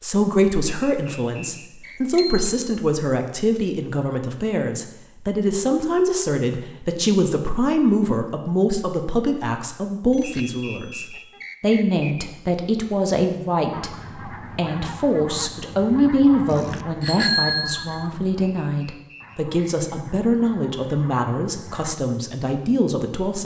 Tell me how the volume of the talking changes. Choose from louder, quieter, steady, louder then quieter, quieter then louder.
steady.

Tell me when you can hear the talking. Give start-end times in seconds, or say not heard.
0.0-23.3.